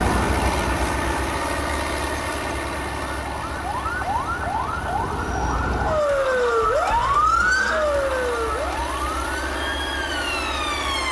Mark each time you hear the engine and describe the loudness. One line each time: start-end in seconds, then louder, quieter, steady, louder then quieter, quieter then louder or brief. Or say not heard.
0.0-11.0 quieter then louder.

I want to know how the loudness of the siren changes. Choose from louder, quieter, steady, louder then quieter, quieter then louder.
louder then quieter.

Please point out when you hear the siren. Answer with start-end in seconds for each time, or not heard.
0.0-11.0.